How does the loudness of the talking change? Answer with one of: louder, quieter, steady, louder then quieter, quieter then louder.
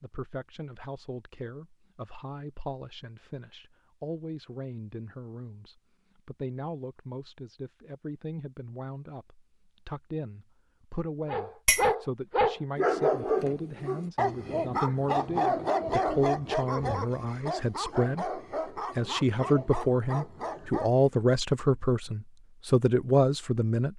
louder.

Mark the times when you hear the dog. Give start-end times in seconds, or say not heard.
11.2-20.9.